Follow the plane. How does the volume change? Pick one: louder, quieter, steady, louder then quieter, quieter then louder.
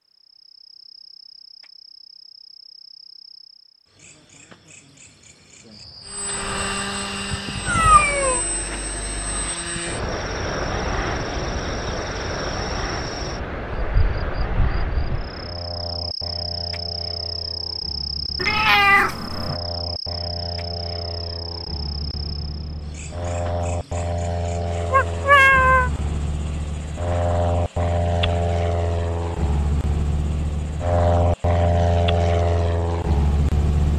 quieter then louder.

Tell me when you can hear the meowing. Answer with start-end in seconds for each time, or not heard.
7.7-8.4, 18.4-19.6, 24.9-25.9.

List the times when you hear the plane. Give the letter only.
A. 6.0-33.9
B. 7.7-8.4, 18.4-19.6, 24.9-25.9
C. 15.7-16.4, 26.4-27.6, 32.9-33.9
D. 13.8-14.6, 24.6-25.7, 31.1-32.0
A.